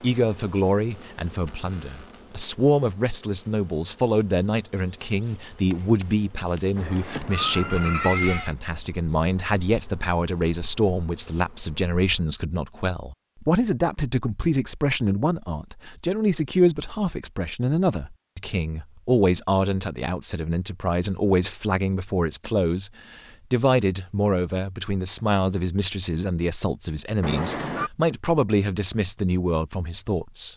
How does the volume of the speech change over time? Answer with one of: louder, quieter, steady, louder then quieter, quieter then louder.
steady.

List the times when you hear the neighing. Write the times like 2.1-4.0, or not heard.
6.8-8.6, 27.2-27.9.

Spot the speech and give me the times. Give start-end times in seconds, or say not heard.
0.0-30.5.